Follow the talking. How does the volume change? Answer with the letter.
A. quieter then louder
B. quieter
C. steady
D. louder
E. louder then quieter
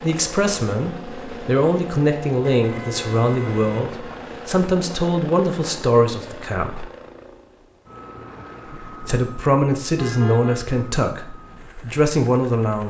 C.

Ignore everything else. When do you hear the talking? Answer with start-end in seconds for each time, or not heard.
0.0-6.8, 9.0-12.8.